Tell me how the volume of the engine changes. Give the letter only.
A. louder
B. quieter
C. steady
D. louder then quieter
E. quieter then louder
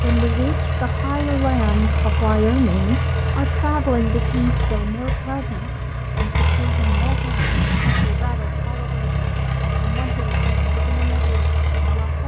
C.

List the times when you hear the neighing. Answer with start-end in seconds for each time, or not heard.
7.3-8.1.